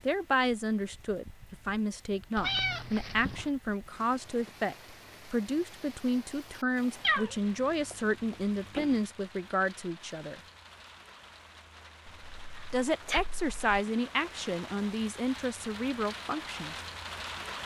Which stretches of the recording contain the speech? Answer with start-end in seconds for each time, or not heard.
0.1-10.4, 12.7-16.8.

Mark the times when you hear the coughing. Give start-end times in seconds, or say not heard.
not heard.